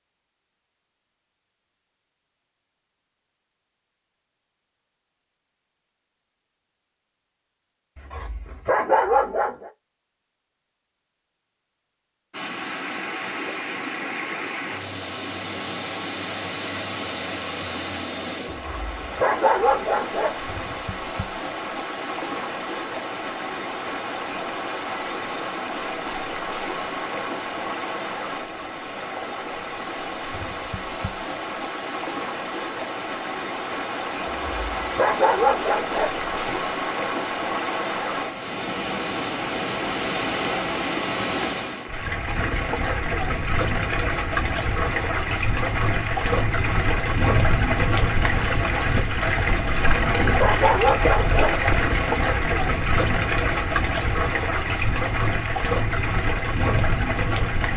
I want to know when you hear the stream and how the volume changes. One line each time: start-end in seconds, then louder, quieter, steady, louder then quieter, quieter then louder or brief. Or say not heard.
12.3-57.7 louder.